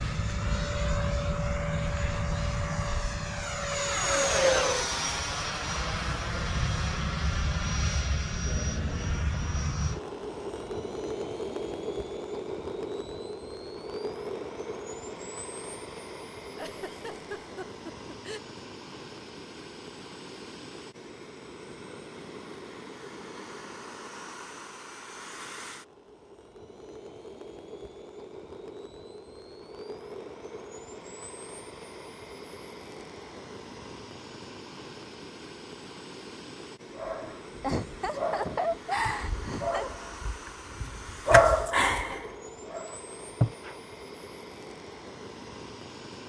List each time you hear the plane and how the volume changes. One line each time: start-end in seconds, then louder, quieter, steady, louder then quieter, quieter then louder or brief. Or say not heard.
0.0-46.2 quieter.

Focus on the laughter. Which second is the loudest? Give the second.
39 s.